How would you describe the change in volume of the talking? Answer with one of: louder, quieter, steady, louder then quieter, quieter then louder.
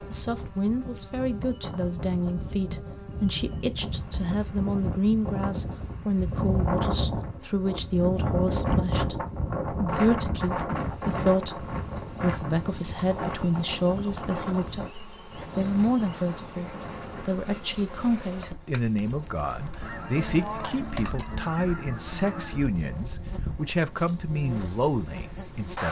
steady.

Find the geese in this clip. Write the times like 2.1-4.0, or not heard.
19.8-22.8.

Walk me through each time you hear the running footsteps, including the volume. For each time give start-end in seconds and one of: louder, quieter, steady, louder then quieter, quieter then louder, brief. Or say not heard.
not heard.